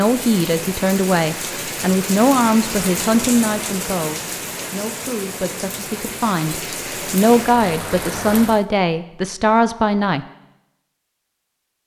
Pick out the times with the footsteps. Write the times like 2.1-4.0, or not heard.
not heard.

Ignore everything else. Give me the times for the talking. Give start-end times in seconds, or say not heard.
0.0-10.2.